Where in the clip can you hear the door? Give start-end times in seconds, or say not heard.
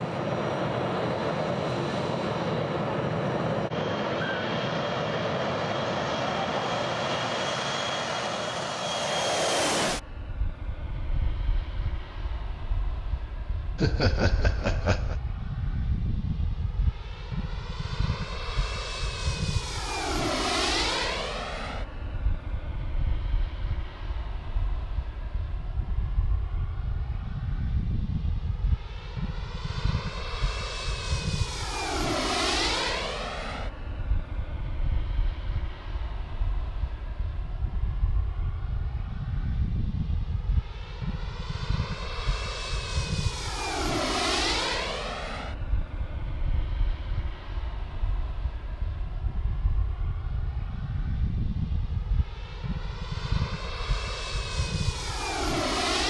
not heard.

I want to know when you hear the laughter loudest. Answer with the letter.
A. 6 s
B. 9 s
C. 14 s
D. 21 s
C.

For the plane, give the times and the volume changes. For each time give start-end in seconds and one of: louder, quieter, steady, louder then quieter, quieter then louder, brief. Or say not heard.
0.0-56.0 quieter.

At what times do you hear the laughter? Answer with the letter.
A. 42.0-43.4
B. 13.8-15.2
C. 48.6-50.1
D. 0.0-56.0
B.